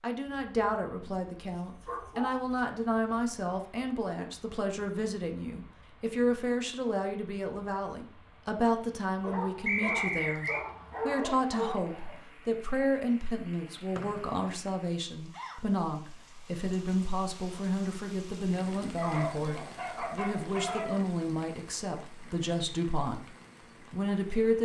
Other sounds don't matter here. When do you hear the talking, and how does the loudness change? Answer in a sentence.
The talking can be heard from 0.0 to 24.6 s, at a steady volume.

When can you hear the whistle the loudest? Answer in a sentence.
The loudest moment of the whistle is at 10 seconds.